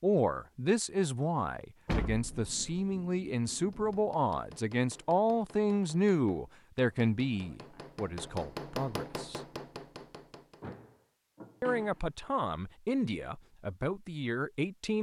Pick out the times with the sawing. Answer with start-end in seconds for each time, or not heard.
not heard.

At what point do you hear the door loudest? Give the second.
2 s.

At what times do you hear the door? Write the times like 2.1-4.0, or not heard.
1.9-2.8, 10.6-12.1.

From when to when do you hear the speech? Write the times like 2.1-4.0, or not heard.
0.0-9.4, 11.6-14.9.